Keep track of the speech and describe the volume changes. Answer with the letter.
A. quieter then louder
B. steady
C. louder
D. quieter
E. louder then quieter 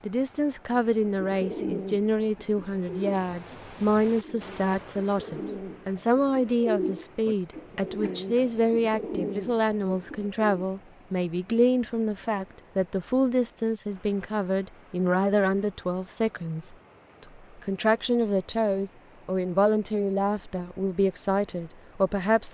B.